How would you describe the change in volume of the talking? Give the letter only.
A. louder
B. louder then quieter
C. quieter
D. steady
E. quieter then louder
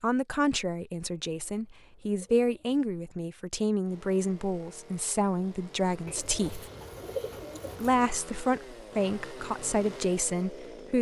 D.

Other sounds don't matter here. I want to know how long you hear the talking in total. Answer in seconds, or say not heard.
10 s.